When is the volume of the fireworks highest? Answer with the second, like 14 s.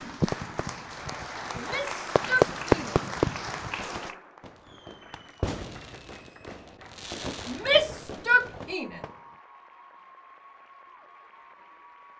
3 s.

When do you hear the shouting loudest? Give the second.
8 s.